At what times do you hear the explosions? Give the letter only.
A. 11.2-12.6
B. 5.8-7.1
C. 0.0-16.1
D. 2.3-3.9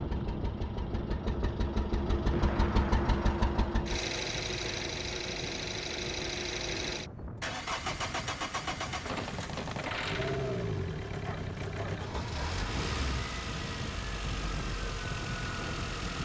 D.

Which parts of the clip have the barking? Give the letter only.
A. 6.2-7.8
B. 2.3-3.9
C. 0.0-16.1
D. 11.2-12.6
D.